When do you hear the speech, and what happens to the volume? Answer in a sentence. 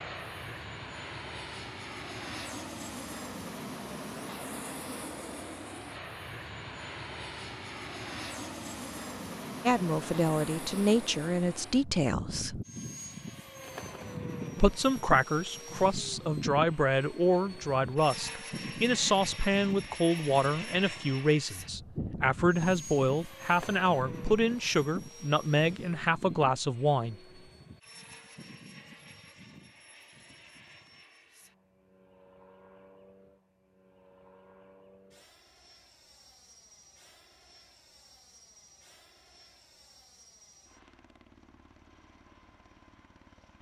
You can hear the speech briefly from 9.7 to 12.6 s; and from 14.6 to 27.1 s, at a steady volume.